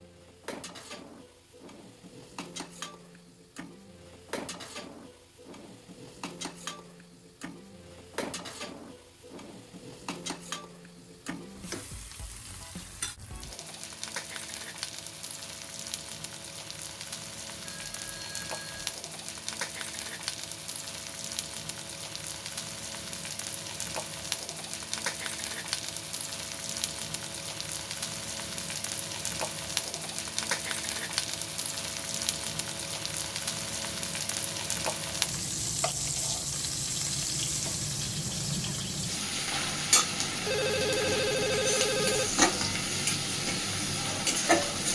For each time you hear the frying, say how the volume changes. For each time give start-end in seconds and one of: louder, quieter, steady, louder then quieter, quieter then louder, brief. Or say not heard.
0.0-44.9 louder.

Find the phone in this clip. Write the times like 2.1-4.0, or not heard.
17.6-18.9, 40.5-42.3.